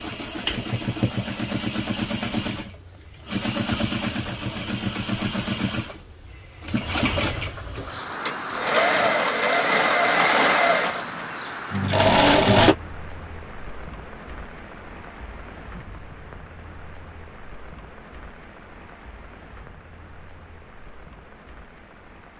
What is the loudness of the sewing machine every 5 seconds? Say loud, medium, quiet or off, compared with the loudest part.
medium, medium, loud, off, off.